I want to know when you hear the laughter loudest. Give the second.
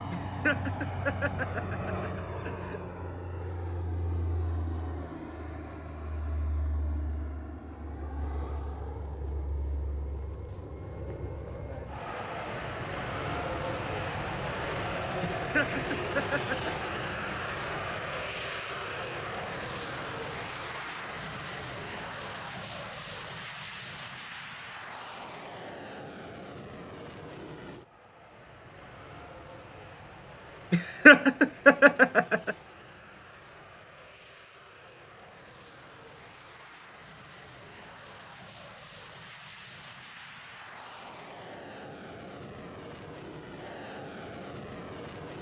31 s.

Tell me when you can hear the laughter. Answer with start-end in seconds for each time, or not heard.
0.1-2.8, 15.2-16.9, 30.7-32.5.